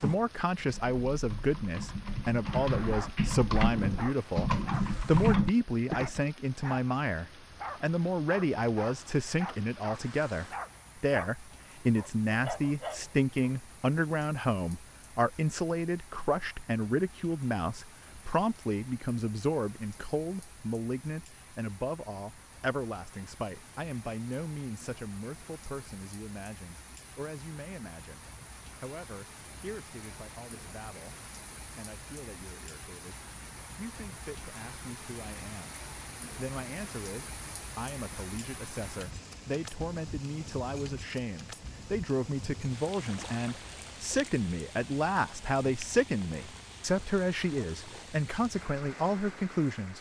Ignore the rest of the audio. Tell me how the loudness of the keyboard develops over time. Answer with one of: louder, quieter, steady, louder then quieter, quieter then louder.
louder.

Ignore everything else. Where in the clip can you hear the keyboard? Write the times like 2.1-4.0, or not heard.
0.0-6.2.